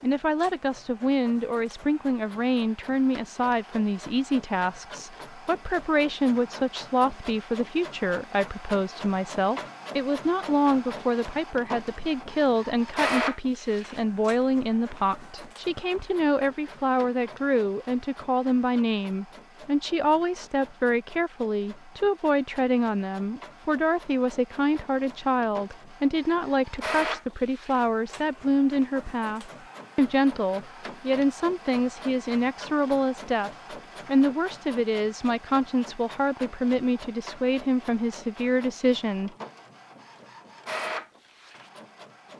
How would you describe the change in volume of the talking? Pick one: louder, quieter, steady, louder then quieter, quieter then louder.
steady.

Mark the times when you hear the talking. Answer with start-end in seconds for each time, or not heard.
0.0-39.3.